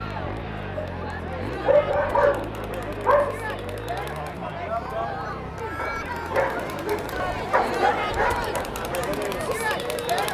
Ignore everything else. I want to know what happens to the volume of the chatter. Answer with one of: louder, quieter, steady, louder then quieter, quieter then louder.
louder.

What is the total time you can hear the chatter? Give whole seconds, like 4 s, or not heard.
10 s.